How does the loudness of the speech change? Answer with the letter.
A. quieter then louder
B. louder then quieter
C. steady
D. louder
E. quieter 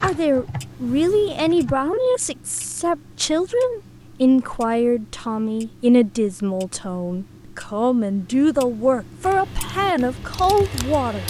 C.